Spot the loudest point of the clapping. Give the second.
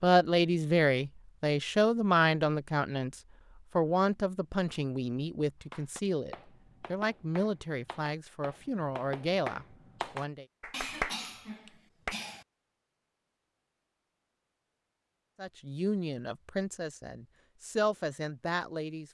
11 s.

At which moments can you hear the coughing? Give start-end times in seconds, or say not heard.
10.7-12.4.